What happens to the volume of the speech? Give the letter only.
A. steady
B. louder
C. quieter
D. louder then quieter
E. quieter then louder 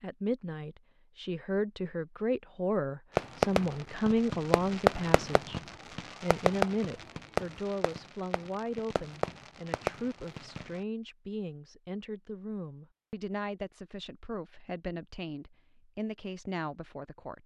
C.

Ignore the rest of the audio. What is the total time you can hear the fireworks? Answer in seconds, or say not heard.
8 s.